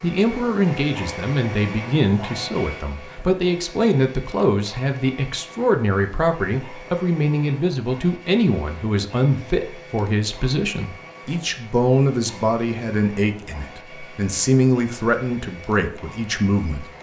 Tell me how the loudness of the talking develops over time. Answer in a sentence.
The volume of the talking stays about the same.